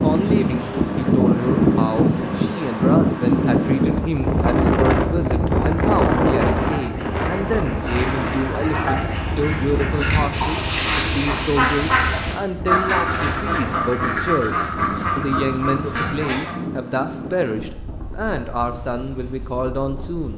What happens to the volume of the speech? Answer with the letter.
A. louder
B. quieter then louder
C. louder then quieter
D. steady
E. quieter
D.